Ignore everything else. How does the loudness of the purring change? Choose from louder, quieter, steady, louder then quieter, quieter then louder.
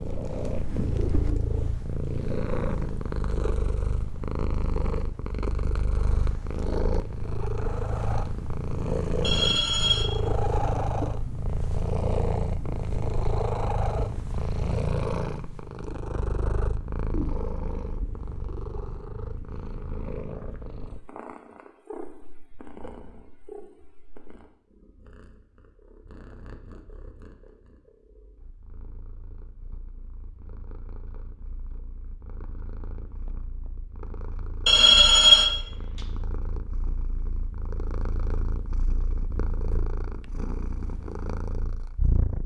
quieter then louder.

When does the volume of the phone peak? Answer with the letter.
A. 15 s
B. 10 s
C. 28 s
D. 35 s
D.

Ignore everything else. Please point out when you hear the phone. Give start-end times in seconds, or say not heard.
9.2-10.2, 34.6-35.6.